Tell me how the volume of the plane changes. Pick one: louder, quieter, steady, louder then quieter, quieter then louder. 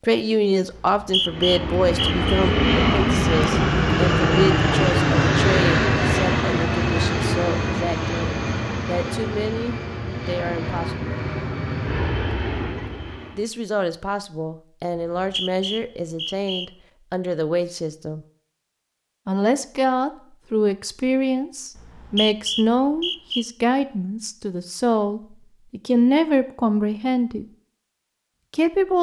quieter.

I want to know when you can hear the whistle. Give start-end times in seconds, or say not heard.
0.7-2.5, 14.9-16.7, 21.8-23.4.